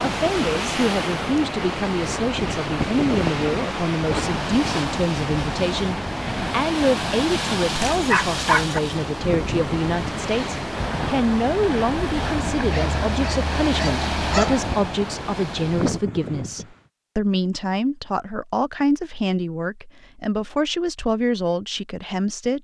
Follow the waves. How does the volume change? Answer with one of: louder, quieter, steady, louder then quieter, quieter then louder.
steady.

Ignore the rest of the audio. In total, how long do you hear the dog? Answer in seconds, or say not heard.
3 s.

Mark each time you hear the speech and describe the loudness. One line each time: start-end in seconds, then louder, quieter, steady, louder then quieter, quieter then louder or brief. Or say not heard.
0.1-22.5 steady.